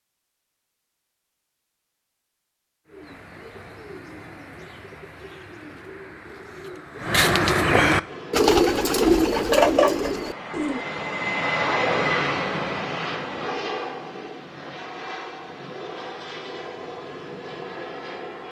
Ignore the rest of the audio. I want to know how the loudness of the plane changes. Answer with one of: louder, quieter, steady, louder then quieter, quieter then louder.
louder then quieter.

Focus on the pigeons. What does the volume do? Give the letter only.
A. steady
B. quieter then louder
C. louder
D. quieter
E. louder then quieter
C.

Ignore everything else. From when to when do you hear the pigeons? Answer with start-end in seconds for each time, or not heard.
2.9-10.8.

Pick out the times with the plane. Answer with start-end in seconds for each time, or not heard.
8.0-18.4.